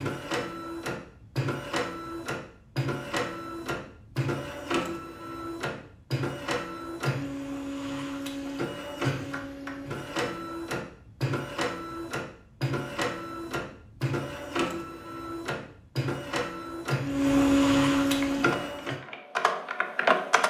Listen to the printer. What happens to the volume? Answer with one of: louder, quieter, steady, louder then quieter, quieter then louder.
louder.